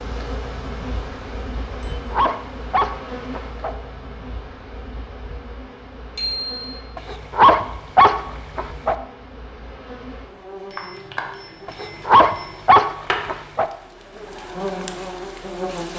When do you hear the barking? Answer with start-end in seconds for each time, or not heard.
1.7-3.7, 7.0-8.9, 11.7-13.7.